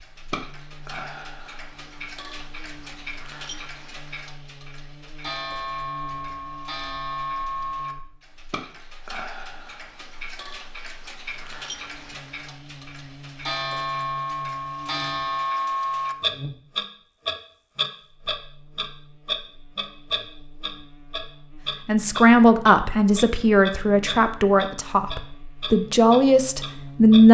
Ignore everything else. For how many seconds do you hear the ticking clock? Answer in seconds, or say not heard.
27 s.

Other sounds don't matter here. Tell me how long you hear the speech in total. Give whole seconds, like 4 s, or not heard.
5 s.